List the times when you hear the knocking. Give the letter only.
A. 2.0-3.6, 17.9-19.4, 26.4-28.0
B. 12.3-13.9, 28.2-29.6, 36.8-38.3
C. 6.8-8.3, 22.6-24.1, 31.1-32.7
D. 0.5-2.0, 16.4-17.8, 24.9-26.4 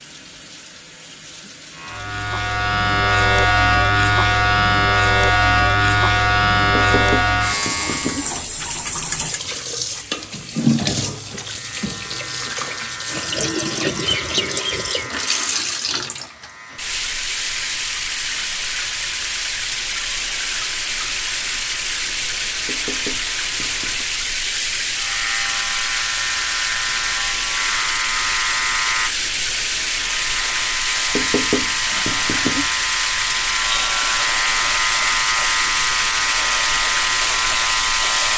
C.